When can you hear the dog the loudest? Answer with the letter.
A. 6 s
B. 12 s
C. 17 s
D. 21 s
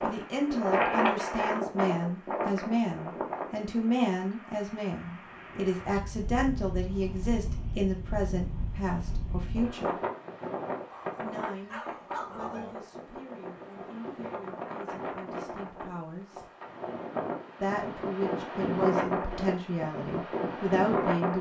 B.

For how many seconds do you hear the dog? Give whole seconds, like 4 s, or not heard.
2 s.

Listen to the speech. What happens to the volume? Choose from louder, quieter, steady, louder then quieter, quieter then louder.
quieter then louder.